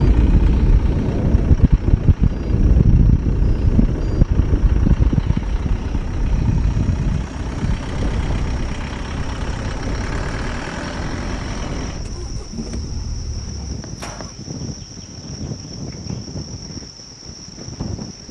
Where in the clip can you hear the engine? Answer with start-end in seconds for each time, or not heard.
0.0-14.3.